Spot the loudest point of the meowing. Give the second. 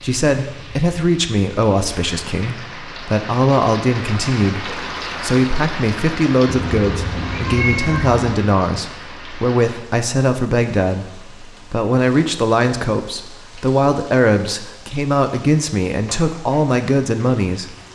8 s.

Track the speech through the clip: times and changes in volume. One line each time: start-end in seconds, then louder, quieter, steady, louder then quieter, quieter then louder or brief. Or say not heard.
0.0-17.8 steady.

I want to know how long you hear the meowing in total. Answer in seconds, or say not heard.
2 s.